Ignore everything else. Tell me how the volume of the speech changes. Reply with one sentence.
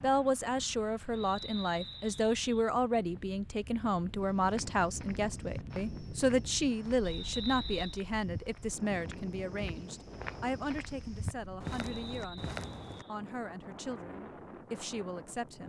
The loudness of the speech goes down.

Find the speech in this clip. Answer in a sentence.
The speech can be heard from 0.0 to 15.6 s.